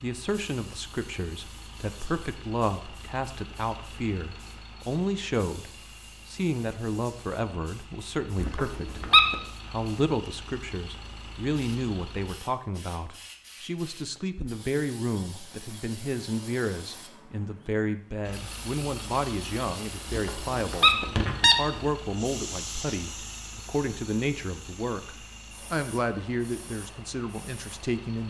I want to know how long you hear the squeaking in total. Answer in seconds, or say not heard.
3 s.